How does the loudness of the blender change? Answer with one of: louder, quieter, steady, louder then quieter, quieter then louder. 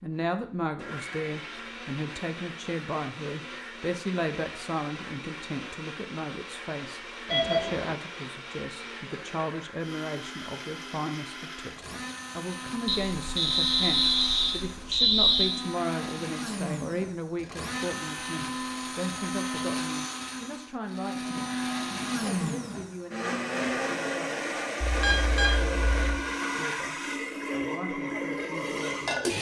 louder.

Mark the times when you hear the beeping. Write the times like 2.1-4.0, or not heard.
7.2-8.0, 12.8-15.6, 24.8-26.1.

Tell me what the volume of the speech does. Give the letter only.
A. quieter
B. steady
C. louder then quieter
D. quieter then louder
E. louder
A.